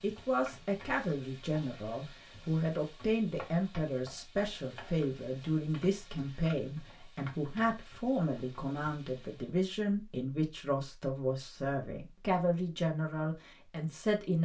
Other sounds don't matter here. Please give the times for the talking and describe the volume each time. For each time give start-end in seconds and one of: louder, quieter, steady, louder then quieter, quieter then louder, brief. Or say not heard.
0.0-14.4 steady.